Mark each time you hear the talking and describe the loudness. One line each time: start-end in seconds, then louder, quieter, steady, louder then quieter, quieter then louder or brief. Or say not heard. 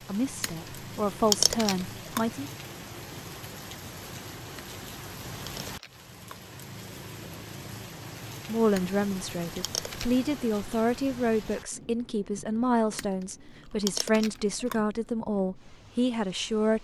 0.0-2.5 brief
8.4-16.7 steady.